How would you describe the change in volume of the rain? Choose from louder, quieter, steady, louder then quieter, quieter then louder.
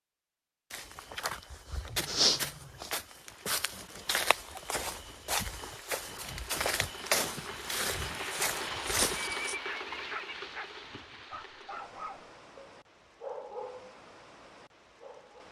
louder then quieter.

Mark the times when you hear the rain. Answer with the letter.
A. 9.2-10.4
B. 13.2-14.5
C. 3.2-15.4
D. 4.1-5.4
C.